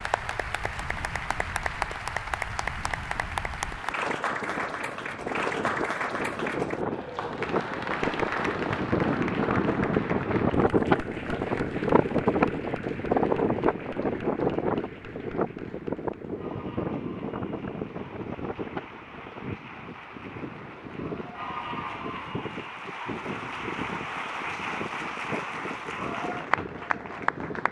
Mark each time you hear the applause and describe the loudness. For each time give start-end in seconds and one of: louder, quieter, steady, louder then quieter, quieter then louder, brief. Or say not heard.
0.0-27.6 quieter then louder.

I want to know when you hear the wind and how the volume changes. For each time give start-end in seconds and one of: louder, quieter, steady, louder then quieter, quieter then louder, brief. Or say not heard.
0.0-27.6 louder then quieter.